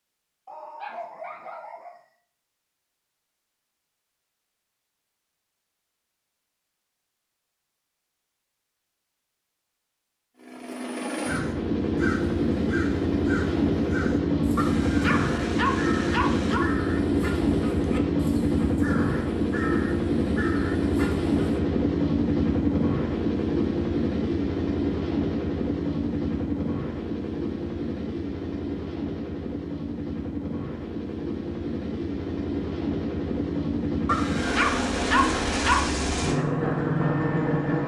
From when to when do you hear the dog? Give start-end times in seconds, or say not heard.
0.5-2.0, 14.6-16.6, 34.0-35.9.